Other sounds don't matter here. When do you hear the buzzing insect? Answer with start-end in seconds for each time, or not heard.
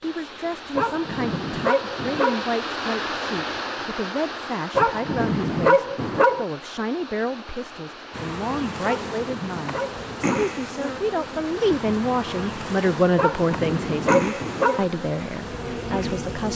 8.1-16.5.